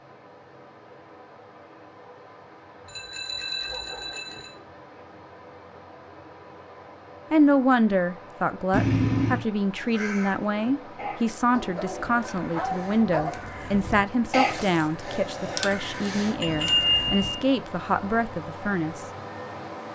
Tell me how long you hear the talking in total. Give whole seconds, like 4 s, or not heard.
12 s.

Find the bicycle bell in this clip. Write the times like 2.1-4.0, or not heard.
2.9-4.5, 8.7-9.4, 16.4-17.4.